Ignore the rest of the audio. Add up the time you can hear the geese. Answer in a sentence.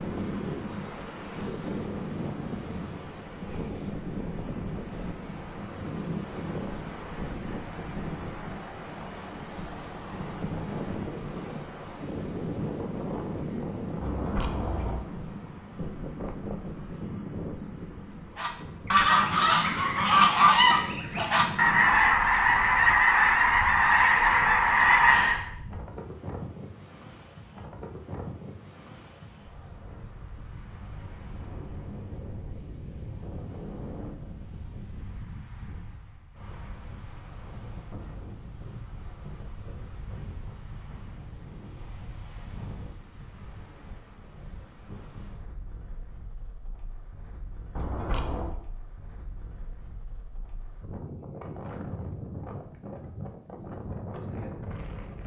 The geese can be heard for 7 seconds in total.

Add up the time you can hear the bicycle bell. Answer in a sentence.
You can hear the bicycle bell for 2 seconds altogether.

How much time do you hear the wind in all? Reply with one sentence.
You can hear the wind for 55 seconds altogether.